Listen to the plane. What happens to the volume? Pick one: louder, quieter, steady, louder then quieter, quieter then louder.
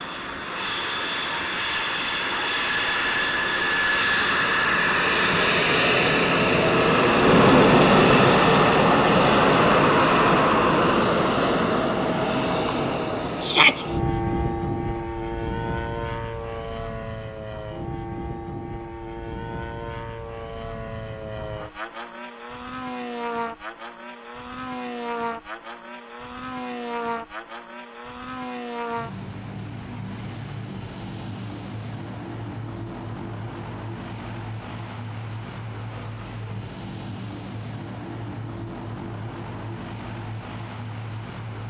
quieter.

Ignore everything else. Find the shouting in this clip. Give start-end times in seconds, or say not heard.
13.4-13.8.